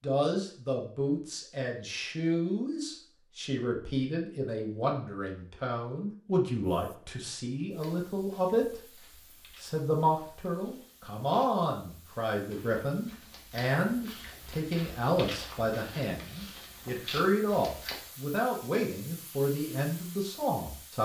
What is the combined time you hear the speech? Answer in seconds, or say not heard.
20 s.